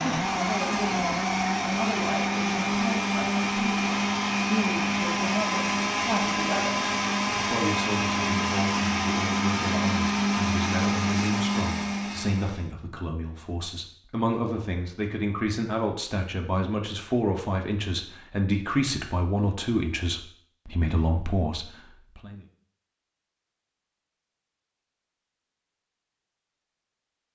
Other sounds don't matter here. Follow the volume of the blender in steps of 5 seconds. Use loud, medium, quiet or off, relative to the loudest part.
loud, loud, loud, off, off, off.